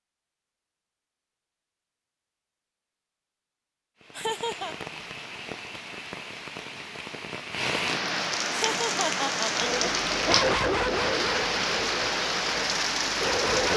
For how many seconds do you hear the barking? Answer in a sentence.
You can hear the barking for 4 seconds altogether.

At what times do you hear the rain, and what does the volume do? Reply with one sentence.
The rain can be heard from 4.0 to 13.7 s, getting louder.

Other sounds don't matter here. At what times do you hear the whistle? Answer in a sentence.
You can't hear the whistle here.